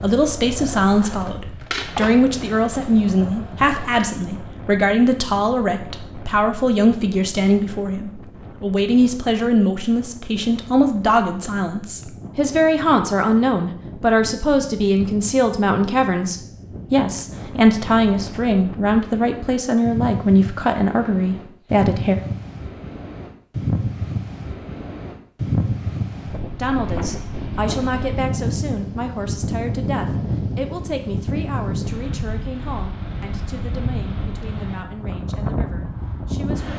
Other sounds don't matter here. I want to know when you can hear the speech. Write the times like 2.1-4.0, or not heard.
0.0-22.1, 26.6-36.7.